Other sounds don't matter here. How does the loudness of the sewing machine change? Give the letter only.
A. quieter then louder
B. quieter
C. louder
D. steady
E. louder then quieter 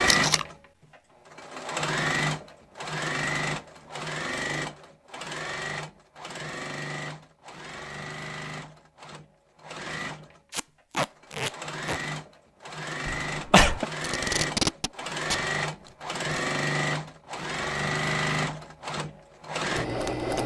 A.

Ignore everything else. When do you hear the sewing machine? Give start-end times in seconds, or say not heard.
0.0-20.4.